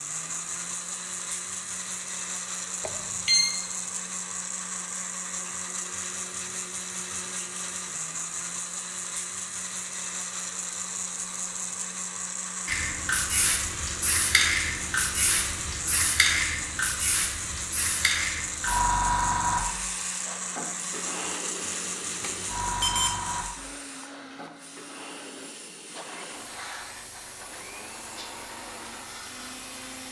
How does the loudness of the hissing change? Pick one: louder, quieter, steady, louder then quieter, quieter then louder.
quieter.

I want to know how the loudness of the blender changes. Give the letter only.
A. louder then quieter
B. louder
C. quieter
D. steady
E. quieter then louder
C.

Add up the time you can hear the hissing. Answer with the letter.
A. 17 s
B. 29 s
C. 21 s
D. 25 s
A.